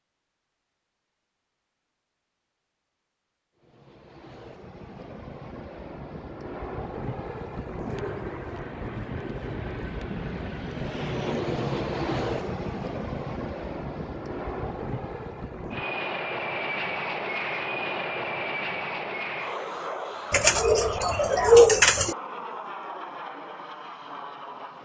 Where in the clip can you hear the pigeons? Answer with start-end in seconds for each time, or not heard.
20.3-22.1.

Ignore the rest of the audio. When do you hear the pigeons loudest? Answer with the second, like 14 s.
22 s.